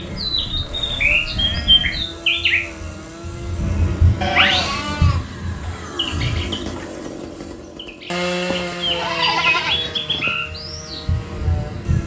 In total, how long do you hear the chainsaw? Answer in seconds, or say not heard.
12 s.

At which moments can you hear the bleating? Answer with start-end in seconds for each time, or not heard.
0.1-2.0, 4.2-5.8, 8.4-10.3.